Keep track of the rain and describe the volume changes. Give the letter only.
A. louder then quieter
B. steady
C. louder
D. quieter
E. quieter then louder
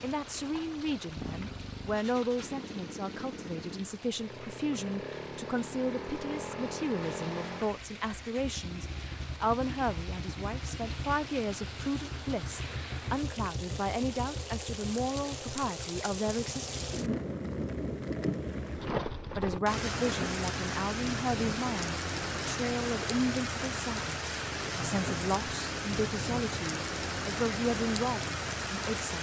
C.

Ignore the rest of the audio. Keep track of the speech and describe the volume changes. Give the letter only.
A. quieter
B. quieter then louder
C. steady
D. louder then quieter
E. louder
C.